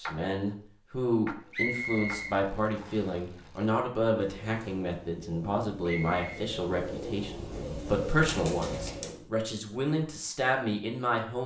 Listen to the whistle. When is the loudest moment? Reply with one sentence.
The volume of the whistle peaks at 2 seconds.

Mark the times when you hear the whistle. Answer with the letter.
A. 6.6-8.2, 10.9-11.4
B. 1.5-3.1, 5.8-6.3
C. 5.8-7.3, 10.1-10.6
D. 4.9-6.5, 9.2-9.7
B.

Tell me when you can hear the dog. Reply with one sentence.
You can't hear the dog here.